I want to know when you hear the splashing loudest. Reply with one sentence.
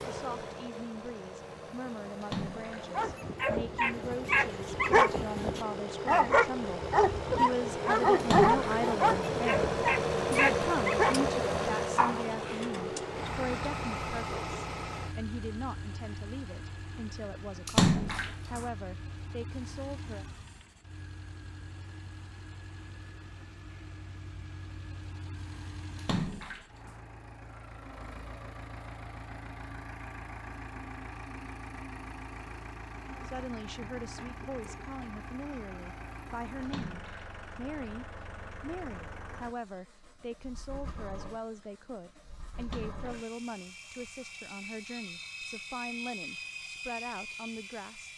The loudest moment of the splashing is at 18 seconds.